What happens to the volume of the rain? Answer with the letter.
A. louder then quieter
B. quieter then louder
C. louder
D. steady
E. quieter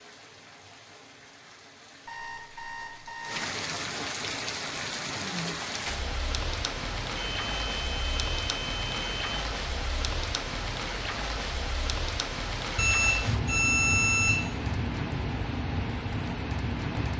C.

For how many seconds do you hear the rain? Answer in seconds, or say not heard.
17 s.